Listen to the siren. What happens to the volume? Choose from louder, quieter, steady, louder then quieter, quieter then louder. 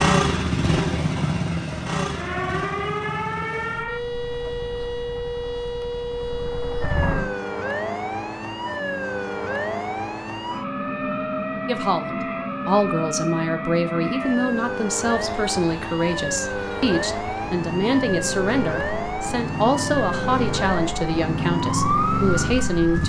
steady.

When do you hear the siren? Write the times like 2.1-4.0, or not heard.
2.1-23.0.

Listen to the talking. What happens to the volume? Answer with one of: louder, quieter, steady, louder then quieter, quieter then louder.
steady.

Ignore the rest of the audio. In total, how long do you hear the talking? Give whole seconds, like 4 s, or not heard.
11 s.